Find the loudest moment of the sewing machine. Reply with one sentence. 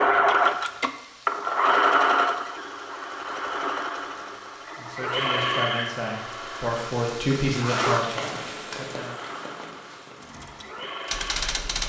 The loudest moment of the sewing machine is at 2 seconds.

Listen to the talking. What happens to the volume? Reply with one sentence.
The loudness of the talking goes up, then down.